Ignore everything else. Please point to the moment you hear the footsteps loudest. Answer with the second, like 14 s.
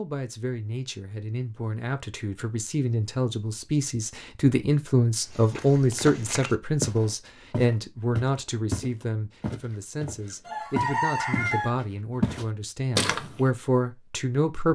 13 s.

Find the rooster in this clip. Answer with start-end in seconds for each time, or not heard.
10.4-11.7.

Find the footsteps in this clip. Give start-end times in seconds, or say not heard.
5.2-11.6, 12.2-13.3.